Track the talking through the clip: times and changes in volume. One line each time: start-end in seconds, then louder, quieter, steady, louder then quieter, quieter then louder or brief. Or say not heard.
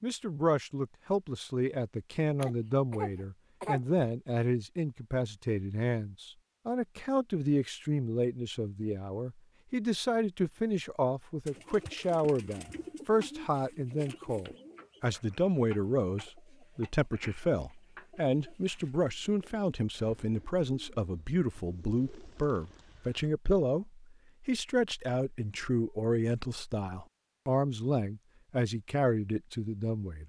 0.0-30.2 steady.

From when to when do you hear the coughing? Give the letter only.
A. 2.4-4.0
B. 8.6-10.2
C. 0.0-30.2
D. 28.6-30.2
A.